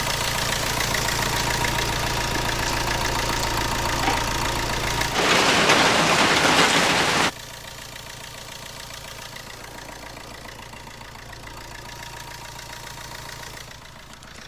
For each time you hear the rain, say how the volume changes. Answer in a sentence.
You can hear the rain from 0.0 to 7.3 s, getting louder.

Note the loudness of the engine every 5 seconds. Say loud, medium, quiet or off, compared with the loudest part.
loud, medium, quiet.